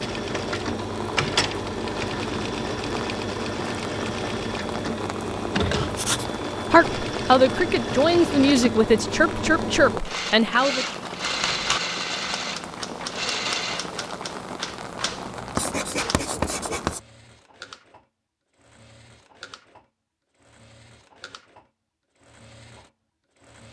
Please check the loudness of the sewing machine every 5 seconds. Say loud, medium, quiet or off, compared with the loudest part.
loud, loud, loud, quiet, quiet.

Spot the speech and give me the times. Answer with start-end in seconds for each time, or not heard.
6.7-10.8.